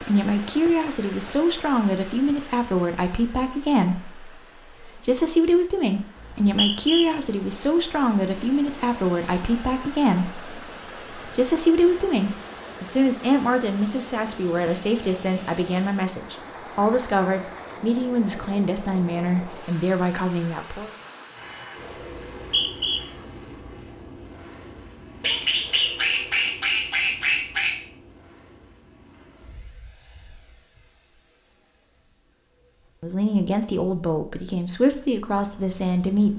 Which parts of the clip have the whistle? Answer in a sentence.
The whistle can be heard from 6.2 to 7.0 s and from 22.1 to 23.0 s.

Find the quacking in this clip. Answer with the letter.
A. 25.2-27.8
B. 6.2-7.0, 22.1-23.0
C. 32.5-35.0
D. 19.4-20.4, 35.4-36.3
A.